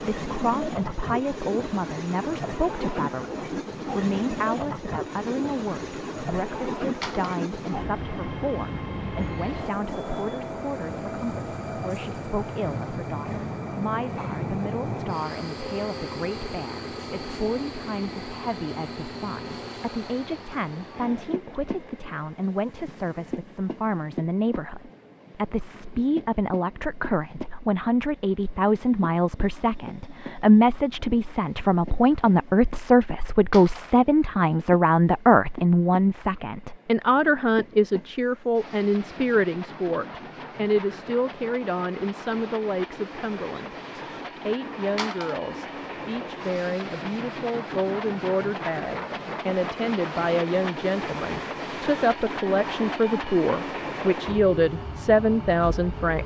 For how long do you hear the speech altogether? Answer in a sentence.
The speech can be heard for 56 seconds in total.